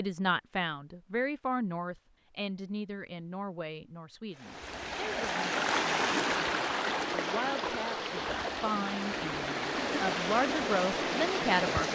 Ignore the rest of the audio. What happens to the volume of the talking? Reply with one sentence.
The volume of the talking goes down, then up.